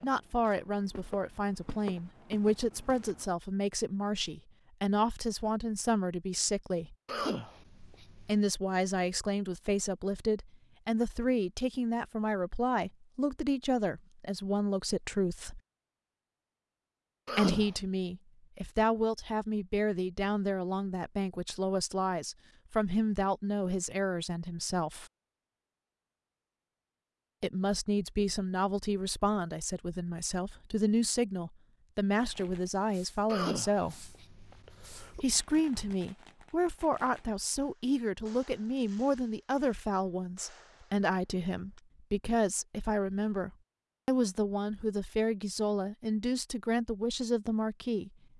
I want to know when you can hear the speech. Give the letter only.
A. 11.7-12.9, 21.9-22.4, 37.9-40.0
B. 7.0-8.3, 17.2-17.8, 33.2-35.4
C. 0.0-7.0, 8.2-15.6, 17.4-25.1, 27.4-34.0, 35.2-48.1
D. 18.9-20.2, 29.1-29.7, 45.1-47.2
C.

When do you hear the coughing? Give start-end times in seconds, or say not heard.
7.0-8.3, 17.2-17.8, 33.2-35.4.